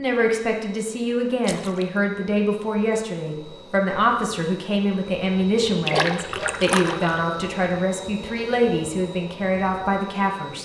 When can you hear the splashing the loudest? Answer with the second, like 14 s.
6 s.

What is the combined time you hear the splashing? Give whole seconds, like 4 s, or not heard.
2 s.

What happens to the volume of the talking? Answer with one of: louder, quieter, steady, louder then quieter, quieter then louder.
steady.